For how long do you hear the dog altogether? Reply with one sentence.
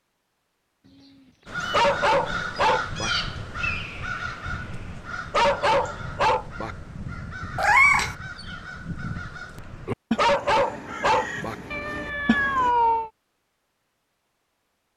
You can hear the dog for 4 seconds altogether.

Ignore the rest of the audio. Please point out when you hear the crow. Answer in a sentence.
The crow can be heard from 1.4 to 12.7 s.